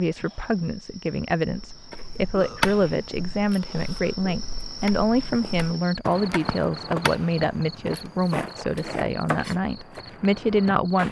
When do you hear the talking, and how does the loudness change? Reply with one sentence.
You can hear the talking from 0.0 to 11.0 s, at a steady volume.